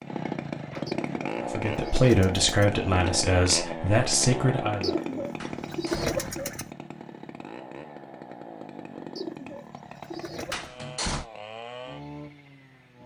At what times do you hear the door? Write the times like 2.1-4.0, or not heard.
0.6-1.0, 5.4-6.2, 10.5-11.2.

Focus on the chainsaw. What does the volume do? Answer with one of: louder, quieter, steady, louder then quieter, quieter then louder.
quieter.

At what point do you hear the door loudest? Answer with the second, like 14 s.
11 s.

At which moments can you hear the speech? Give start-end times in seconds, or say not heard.
1.4-4.9.